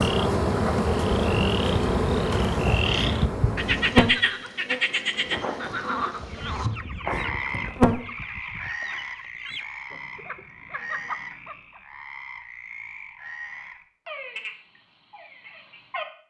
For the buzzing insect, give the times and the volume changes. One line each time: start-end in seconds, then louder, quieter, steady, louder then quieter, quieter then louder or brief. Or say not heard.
0.0-8.1 quieter.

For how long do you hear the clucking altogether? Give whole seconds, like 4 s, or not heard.
6 s.